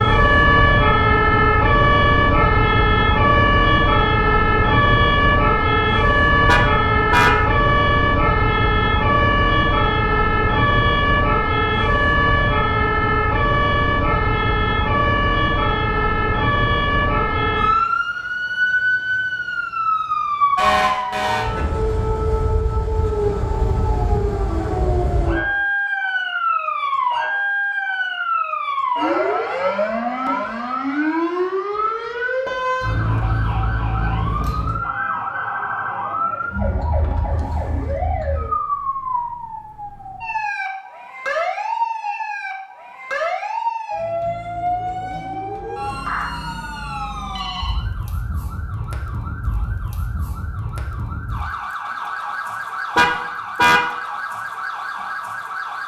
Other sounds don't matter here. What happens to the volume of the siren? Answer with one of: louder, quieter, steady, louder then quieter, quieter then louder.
quieter.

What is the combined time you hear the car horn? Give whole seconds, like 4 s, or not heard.
2 s.